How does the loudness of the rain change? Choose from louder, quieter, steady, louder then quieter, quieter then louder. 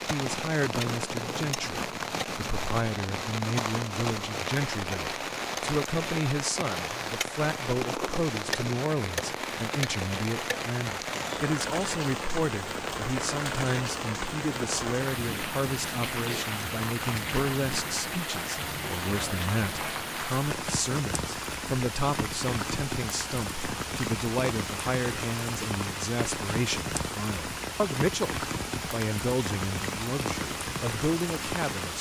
steady.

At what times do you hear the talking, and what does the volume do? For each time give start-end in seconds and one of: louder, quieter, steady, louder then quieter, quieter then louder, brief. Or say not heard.
0.1-31.9 steady.